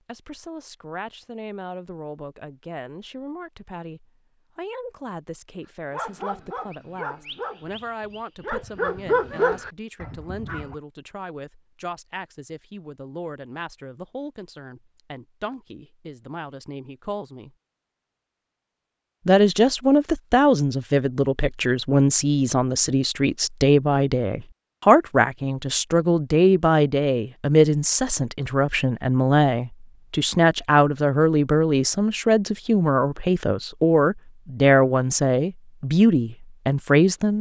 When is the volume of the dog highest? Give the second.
9 s.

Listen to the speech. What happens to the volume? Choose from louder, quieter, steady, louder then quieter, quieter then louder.
louder.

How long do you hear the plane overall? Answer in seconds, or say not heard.
not heard.